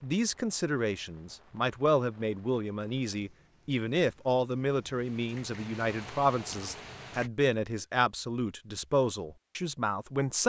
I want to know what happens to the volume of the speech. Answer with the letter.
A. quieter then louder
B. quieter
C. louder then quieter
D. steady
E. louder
D.